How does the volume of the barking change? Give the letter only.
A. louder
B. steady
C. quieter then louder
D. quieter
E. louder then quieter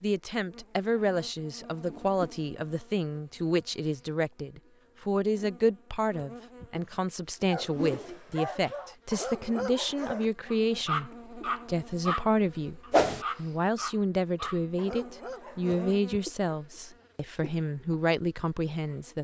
E.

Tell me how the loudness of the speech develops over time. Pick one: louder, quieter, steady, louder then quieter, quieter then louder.
steady.